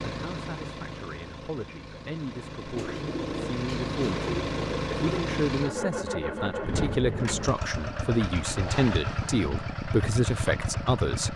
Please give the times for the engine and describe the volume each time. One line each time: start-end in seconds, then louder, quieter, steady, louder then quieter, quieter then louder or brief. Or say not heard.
0.0-11.3 louder.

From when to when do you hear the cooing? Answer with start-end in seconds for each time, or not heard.
2.8-5.4.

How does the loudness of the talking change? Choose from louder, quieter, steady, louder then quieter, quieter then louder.
louder.